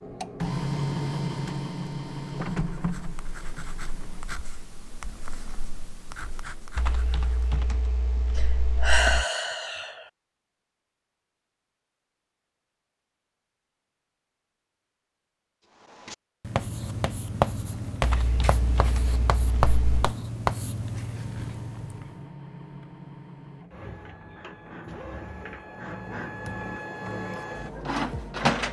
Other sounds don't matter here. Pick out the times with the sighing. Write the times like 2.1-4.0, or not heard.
8.3-10.1.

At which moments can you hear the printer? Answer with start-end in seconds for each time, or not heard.
0.0-4.2, 21.1-28.6.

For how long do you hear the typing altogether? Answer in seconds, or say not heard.
5 s.